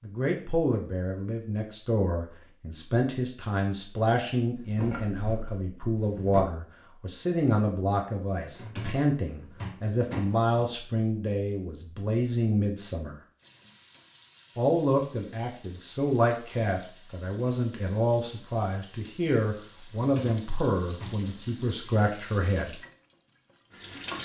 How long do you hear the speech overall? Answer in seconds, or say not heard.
21 s.